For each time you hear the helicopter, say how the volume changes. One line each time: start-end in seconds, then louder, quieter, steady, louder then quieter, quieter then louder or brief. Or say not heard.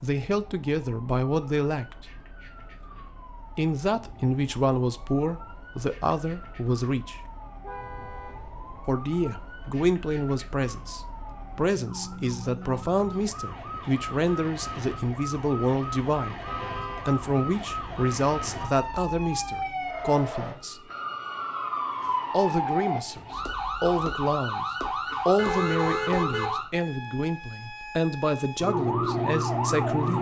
not heard.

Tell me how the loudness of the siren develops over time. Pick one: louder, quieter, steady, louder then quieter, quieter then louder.
louder.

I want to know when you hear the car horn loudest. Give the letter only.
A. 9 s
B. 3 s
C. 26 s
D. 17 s
C.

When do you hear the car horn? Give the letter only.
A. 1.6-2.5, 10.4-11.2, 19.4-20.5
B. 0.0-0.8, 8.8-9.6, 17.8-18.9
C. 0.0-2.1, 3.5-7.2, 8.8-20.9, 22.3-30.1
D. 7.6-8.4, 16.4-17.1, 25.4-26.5
D.